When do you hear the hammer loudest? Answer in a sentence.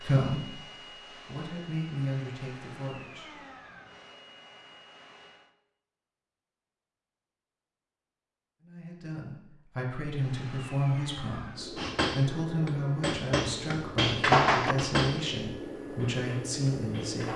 The volume of the hammer peaks at 14 seconds.